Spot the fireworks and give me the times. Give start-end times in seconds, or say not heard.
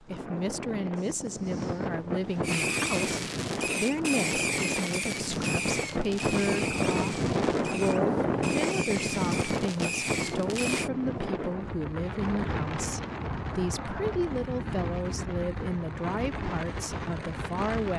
2.4-10.9.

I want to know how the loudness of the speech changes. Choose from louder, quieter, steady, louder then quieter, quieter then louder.
steady.